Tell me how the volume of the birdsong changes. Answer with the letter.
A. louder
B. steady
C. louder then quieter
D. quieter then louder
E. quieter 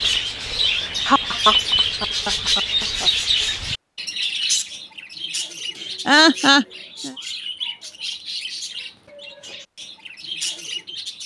E.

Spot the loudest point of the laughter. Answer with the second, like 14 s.
6 s.